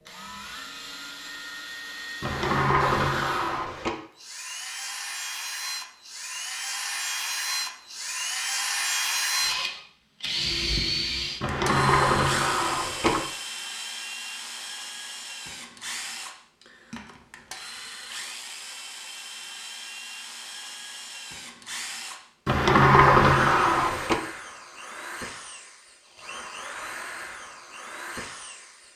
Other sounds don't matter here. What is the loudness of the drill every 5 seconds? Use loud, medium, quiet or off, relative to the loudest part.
medium, loud, loud, medium, medium, medium.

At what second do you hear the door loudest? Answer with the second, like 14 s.
23 s.